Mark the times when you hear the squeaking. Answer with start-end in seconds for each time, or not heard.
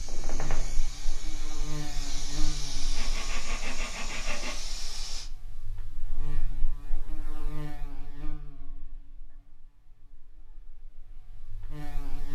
0.1-0.8.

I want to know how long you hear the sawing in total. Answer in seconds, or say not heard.
2 s.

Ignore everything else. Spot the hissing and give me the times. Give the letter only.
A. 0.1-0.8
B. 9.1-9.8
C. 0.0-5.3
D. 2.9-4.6
C.